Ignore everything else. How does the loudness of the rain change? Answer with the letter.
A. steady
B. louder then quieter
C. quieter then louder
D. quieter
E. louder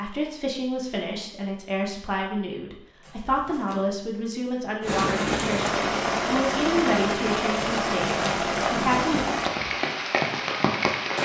A.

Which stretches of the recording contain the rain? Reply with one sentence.
The rain can be heard from 4.8 to 11.2 s.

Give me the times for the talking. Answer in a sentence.
You can hear the talking from 0.0 to 9.2 s.